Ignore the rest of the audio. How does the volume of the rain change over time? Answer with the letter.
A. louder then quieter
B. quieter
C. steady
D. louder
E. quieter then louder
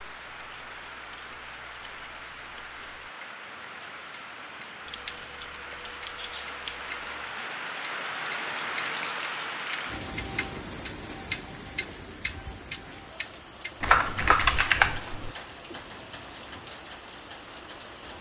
A.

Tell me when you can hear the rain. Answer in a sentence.
The rain can be heard from 0.0 to 18.1 s.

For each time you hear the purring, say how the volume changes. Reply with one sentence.
The purring can't be heard in this clip.